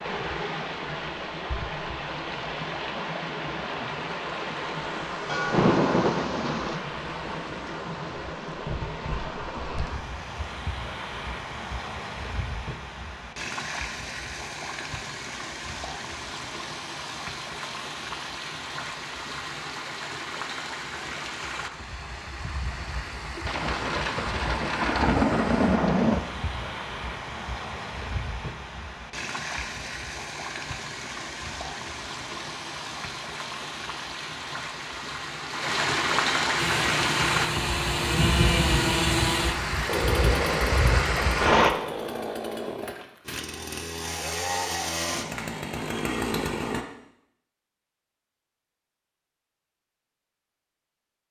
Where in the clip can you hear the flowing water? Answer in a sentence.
The flowing water can be heard from 0.0 to 41.7 s.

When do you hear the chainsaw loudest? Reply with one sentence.
The loudest moment of the chainsaw is at 39 seconds.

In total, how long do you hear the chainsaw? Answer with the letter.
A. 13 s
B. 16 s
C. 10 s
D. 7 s
C.